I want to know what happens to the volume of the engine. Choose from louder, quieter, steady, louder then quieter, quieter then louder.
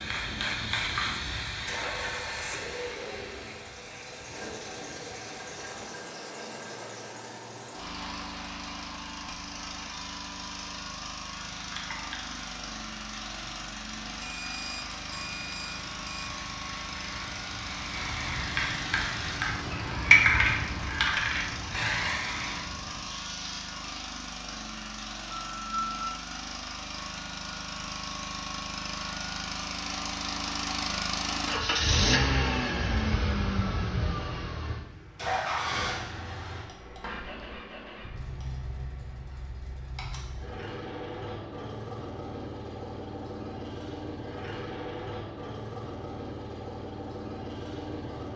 louder then quieter.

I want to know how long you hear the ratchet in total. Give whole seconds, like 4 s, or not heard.
not heard.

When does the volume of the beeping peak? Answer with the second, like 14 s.
26 s.